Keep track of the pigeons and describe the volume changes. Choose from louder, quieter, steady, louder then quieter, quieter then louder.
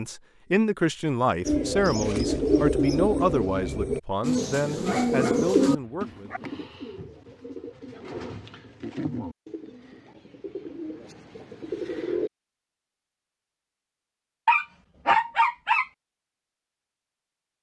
quieter.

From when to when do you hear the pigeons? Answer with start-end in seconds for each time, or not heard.
1.4-12.3.